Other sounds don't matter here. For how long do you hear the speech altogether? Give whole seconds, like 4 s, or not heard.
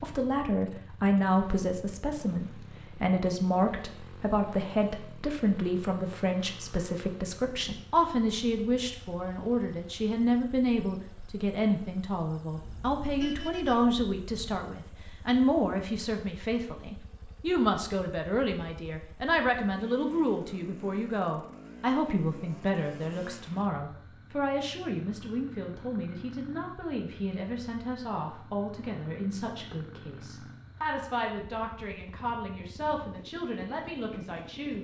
35 s.